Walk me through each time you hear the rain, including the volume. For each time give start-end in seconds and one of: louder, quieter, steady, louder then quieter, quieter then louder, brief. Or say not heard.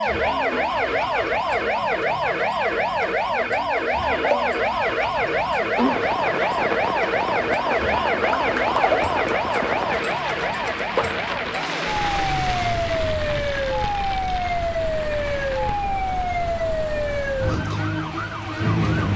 5.8-19.1 quieter.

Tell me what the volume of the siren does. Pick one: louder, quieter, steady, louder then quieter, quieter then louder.
steady.